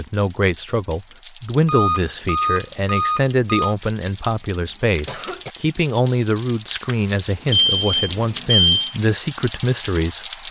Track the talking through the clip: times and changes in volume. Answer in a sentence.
You can hear the talking from 0.0 to 10.4 s, at a steady volume.